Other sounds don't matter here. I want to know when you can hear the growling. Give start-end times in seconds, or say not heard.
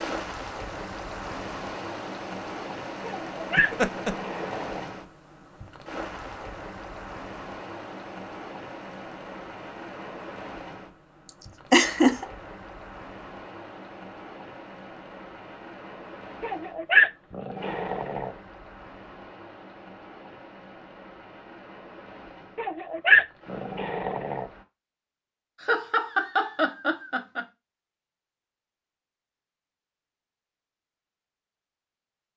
3.0-4.8, 16.4-18.3, 22.6-24.4.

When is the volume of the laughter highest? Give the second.
12 s.